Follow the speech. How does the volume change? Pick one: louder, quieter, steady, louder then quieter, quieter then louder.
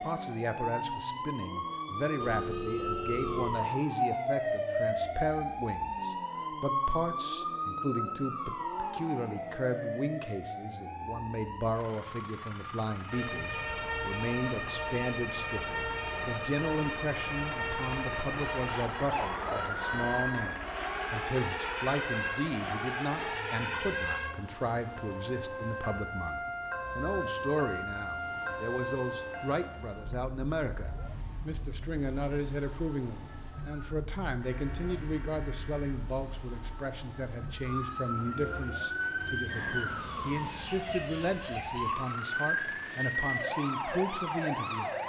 steady.